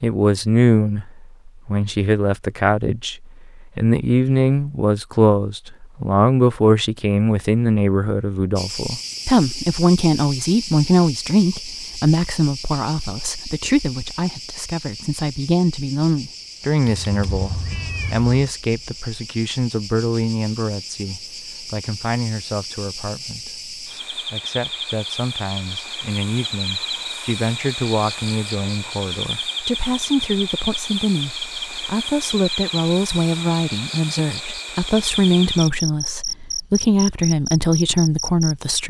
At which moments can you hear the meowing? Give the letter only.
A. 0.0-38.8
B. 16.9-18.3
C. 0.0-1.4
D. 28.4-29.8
B.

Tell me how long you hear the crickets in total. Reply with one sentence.
You can hear the crickets for 30 seconds altogether.